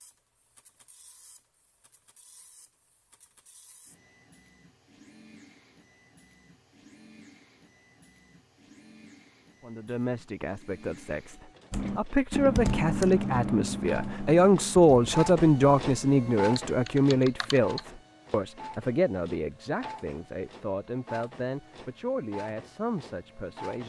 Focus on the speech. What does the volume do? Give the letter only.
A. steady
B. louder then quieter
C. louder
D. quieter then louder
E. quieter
B.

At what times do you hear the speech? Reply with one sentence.
The speech can be heard from 9.6 to 23.8 s.